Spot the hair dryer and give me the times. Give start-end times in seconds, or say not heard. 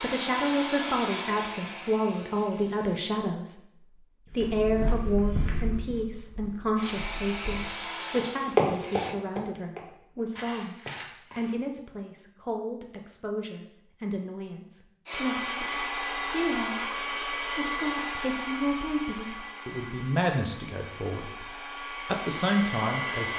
0.0-3.1, 6.8-9.2, 15.1-23.3.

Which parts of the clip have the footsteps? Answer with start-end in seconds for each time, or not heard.
4.4-11.6.